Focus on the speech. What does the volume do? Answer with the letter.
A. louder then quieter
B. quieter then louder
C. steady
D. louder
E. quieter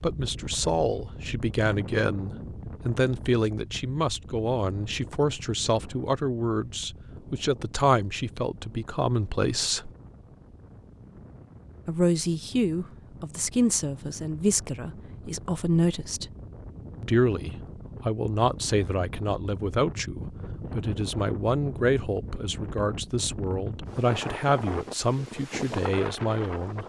C.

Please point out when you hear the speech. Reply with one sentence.
The speech can be heard from 0.0 to 9.9 s, from 11.8 to 16.3 s and from 17.0 to 26.8 s.